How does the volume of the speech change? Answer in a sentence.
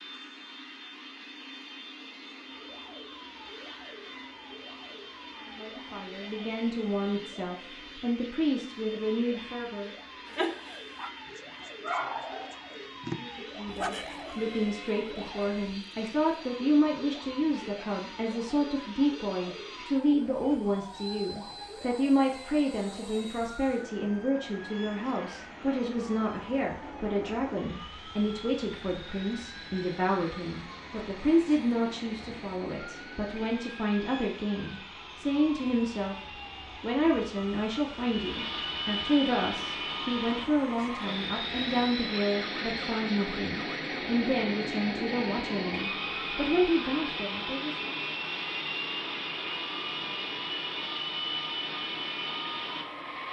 The volume of the speech stays about the same.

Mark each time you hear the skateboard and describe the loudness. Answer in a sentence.
The skateboard can't be heard in this clip.